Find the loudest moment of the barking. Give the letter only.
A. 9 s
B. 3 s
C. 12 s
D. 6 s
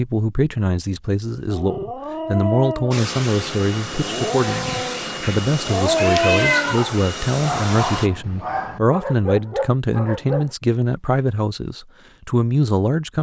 D.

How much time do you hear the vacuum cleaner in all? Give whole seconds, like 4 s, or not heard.
5 s.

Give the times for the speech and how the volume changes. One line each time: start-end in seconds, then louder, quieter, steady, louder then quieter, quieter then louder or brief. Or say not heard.
0.0-13.1 steady.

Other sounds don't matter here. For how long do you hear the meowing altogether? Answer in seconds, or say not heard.
2 s.